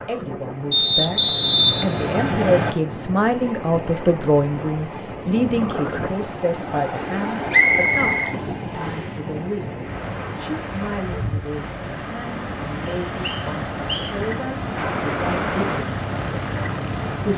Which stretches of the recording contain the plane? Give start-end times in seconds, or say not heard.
14.8-17.3.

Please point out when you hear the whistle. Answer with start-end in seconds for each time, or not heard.
0.7-2.8, 7.5-9.1, 12.8-14.2.